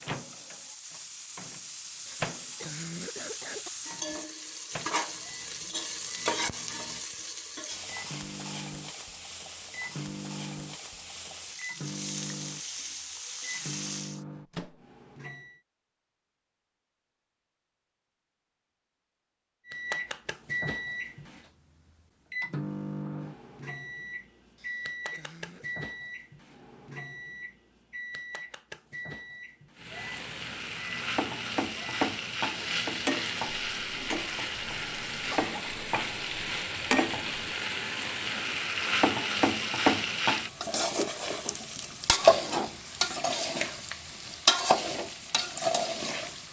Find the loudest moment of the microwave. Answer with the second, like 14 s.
20 s.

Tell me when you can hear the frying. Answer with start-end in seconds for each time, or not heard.
0.0-14.2, 29.8-46.4.